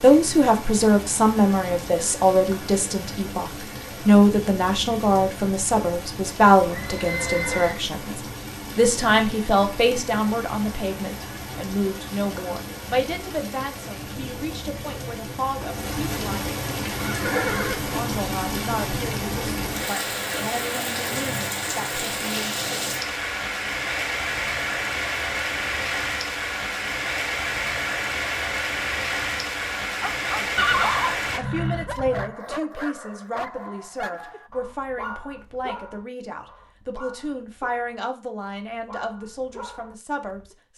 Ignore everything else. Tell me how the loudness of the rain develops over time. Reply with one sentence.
The volume of the rain goes up.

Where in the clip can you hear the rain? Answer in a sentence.
The rain can be heard from 0.0 to 31.4 s.